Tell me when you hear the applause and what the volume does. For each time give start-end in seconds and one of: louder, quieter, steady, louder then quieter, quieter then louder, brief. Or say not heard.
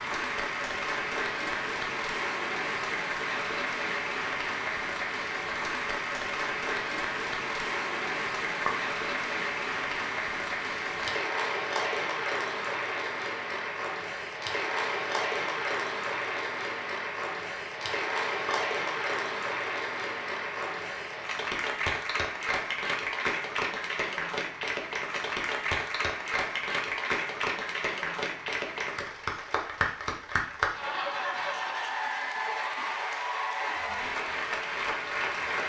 0.0-35.6 steady.